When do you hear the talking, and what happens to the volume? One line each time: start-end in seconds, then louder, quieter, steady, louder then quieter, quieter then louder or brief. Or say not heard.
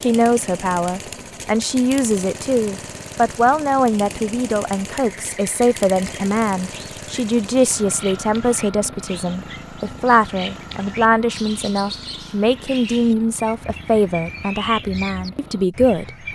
0.0-16.1 steady.